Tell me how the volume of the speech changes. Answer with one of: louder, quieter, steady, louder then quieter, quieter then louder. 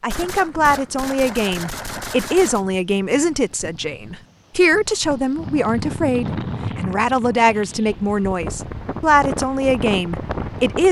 steady.